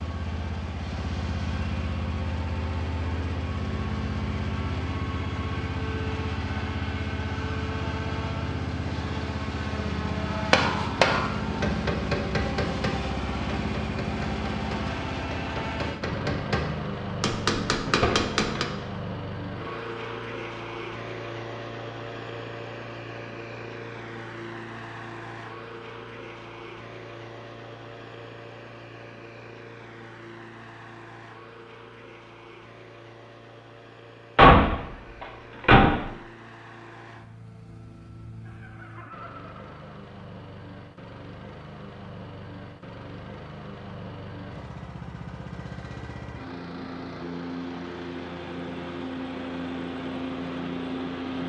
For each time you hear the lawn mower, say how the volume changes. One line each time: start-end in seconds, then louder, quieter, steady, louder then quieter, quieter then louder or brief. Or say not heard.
0.0-51.4 quieter then louder.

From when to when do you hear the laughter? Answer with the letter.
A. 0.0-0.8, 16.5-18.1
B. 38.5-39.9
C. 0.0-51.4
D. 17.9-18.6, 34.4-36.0
B.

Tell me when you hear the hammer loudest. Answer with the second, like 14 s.
11 s.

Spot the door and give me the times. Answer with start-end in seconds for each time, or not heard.
17.9-18.6, 34.4-36.0.